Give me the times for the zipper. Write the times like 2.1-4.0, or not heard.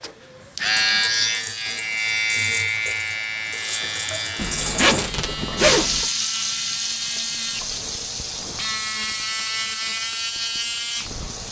4.3-6.0.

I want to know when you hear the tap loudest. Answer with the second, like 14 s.
6 s.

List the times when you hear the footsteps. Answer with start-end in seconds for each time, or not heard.
not heard.